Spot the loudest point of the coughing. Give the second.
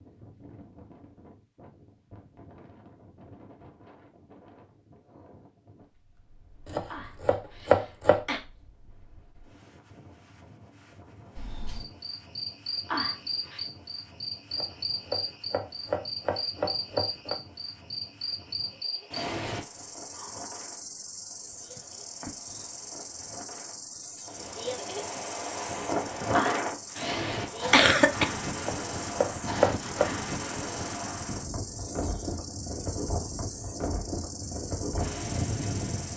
28 s.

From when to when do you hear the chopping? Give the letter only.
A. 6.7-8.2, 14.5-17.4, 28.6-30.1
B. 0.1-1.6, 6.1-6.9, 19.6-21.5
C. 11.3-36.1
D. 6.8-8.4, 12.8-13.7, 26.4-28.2
A.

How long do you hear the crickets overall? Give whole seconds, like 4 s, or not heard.
25 s.